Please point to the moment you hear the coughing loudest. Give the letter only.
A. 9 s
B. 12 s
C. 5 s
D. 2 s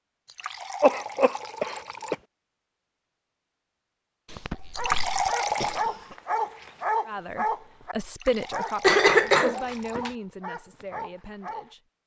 A.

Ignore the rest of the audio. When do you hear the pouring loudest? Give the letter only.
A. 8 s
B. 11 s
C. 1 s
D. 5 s
D.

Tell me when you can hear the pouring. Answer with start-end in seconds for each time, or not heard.
0.2-2.1, 4.7-5.8, 8.1-10.0.